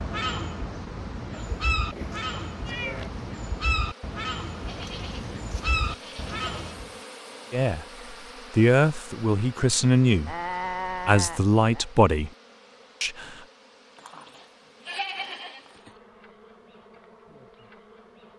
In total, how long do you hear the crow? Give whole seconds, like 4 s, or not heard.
7 s.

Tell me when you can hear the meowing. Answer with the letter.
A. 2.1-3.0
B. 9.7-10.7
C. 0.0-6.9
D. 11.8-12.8
A.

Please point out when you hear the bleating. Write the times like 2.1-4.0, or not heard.
1.3-3.1, 4.7-6.8, 10.2-11.8, 13.9-15.9.